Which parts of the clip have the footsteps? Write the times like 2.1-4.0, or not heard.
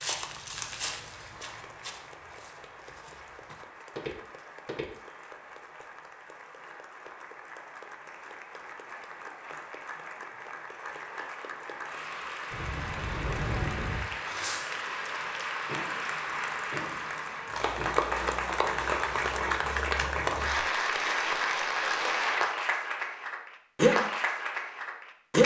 0.0-4.9.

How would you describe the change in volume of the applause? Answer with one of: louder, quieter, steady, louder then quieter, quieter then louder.
louder.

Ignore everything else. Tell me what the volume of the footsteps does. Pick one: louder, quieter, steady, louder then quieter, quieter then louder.
quieter then louder.